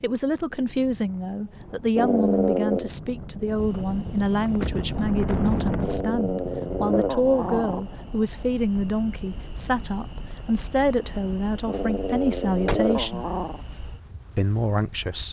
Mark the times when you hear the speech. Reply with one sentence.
You can hear the speech from 0.0 to 13.2 s and from 14.3 to 15.2 s.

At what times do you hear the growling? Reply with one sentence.
You can hear the growling from 1.9 to 2.9 s, from 5.8 to 7.8 s and from 11.7 to 13.6 s.